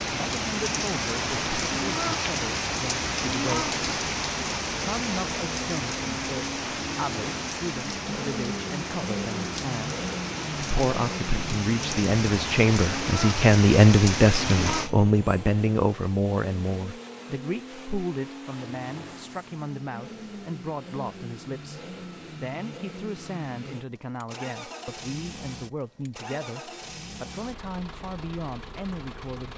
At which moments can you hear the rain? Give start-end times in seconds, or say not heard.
0.0-14.9.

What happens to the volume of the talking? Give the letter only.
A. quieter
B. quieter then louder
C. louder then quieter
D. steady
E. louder
C.